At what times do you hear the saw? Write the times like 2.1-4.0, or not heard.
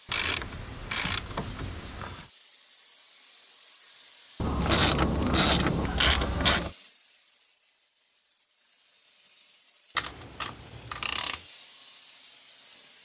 not heard.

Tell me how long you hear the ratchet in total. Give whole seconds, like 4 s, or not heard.
6 s.